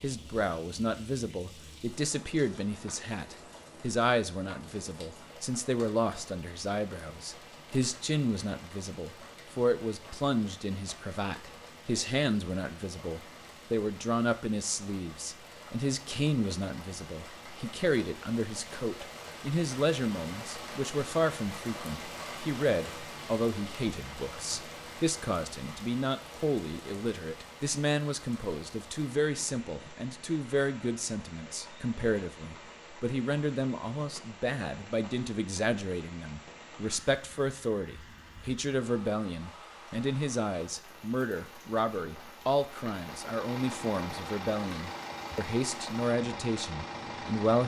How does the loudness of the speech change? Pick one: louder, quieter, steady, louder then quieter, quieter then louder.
steady.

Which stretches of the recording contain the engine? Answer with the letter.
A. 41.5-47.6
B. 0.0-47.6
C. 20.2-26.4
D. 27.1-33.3
A.